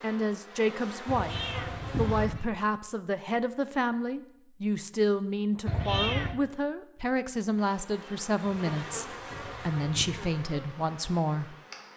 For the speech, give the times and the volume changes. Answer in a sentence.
You can hear the speech from 0.0 to 11.9 s, at a steady volume.